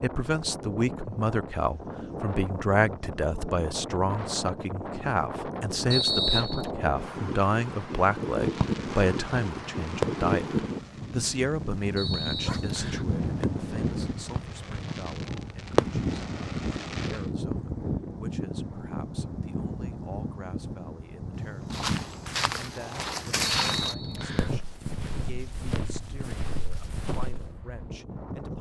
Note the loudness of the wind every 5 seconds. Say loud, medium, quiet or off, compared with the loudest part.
medium, loud, loud, loud, medium, medium.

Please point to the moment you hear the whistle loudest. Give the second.
6 s.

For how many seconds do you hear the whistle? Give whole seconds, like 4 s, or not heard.
3 s.